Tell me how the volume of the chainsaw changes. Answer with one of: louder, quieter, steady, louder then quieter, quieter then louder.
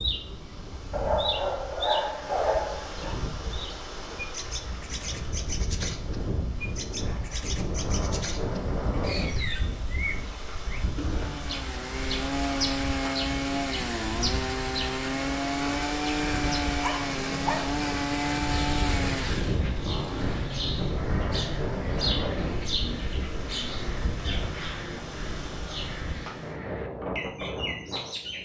steady.